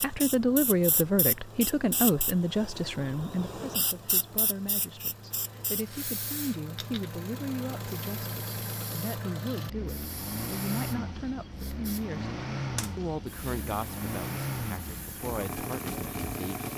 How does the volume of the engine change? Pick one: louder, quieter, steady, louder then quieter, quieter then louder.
louder.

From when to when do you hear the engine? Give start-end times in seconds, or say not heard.
0.0-16.7.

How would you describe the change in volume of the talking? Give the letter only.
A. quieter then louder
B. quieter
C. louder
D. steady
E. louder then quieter
B.